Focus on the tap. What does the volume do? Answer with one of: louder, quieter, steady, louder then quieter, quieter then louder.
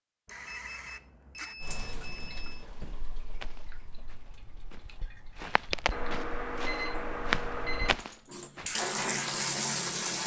quieter then louder.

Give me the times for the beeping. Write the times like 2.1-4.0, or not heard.
0.2-2.6, 5.9-7.9.